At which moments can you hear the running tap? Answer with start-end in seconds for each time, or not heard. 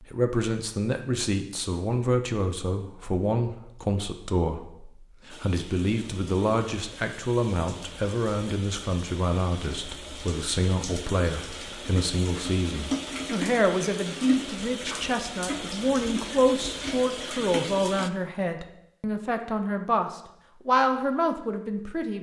5.3-18.1.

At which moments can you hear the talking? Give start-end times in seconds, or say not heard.
0.0-22.1.